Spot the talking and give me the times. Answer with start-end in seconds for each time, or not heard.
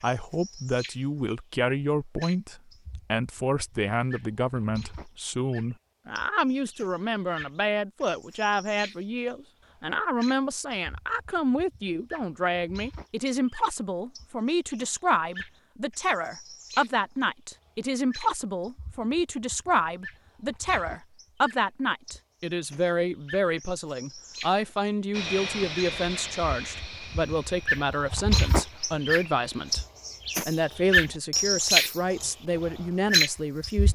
0.0-29.8, 30.4-33.9.